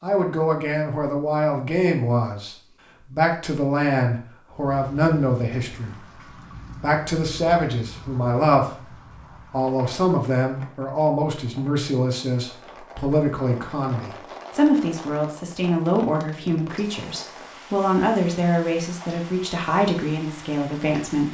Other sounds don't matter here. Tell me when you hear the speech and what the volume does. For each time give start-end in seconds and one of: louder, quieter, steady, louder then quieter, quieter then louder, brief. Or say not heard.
0.0-21.2 steady.